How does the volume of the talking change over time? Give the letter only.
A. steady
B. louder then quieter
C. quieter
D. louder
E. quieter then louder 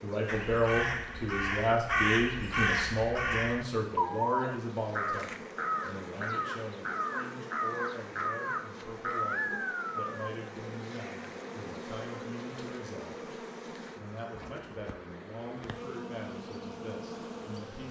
C.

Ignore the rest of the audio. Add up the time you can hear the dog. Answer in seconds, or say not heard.
not heard.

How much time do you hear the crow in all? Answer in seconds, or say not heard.
10 s.